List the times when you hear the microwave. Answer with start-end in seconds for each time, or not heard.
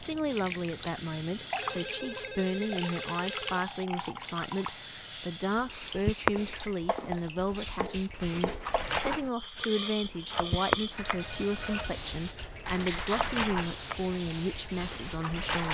not heard.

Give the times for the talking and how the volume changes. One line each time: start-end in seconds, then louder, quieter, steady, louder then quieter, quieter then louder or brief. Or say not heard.
0.0-15.6 steady.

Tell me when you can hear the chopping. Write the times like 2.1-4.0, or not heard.
6.3-7.1, 7.8-14.0.